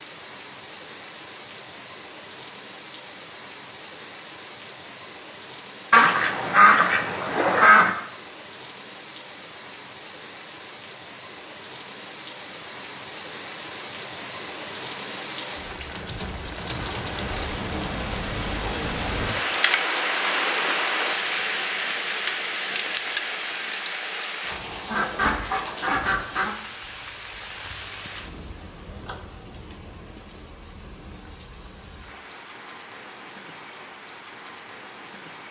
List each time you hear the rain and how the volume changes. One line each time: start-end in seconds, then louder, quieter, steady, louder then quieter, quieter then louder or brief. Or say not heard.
0.0-35.4 louder then quieter.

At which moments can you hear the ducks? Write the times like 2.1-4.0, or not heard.
5.9-8.0, 24.9-26.6.